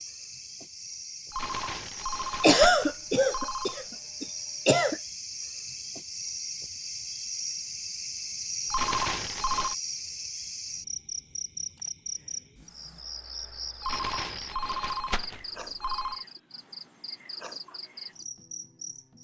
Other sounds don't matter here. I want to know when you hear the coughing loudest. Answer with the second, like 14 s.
3 s.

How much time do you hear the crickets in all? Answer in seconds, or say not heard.
19 s.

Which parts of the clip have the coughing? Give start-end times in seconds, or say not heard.
2.4-5.0.